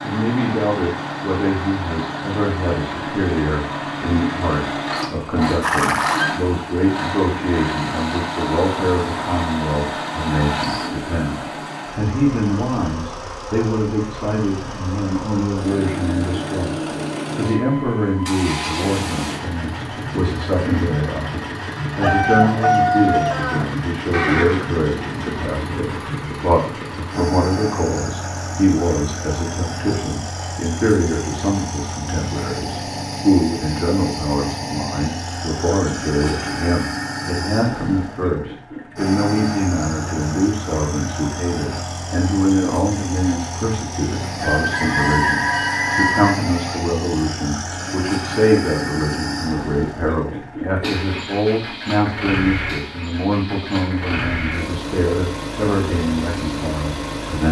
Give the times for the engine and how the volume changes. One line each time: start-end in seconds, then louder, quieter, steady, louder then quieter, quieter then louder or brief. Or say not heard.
0.0-57.4 steady.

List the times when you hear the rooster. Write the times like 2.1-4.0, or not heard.
22.0-23.6, 44.4-46.3.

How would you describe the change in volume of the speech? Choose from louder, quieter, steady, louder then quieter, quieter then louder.
steady.